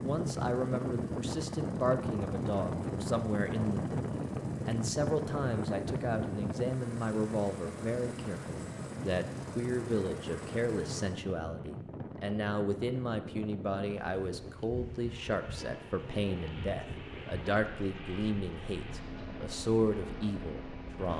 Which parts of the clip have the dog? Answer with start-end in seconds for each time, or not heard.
not heard.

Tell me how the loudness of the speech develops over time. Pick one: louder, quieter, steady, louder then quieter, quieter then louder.
steady.